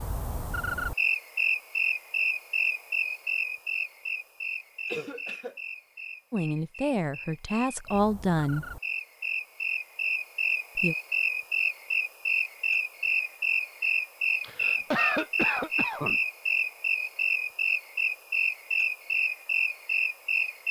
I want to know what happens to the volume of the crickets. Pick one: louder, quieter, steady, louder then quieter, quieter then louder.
quieter then louder.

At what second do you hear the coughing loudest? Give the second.
15 s.